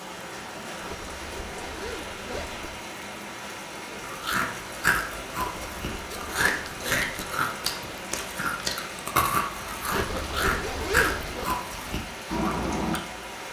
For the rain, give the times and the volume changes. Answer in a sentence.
The rain can be heard from 0.0 to 13.4 s, at a steady volume.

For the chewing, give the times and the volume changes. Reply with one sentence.
The chewing can be heard from 4.0 to 13.0 s, at a steady volume.